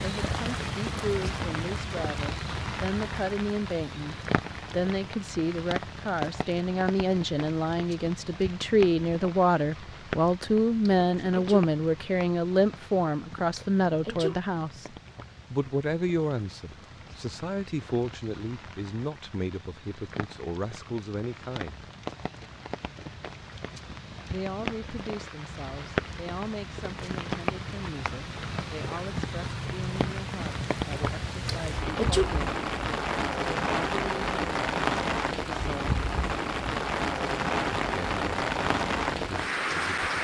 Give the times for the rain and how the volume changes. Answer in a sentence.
The rain can be heard from 0.0 to 40.1 s, getting quieter then louder.